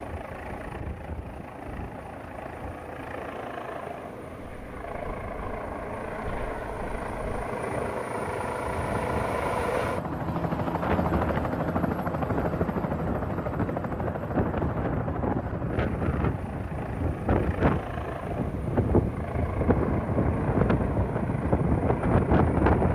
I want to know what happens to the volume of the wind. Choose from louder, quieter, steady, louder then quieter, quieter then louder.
louder.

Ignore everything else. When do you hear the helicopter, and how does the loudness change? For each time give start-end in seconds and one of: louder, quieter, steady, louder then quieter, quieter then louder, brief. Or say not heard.
0.0-22.8 louder then quieter.